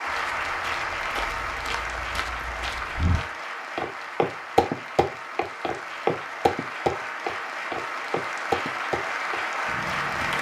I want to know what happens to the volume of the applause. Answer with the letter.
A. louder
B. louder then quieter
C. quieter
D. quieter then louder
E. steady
D.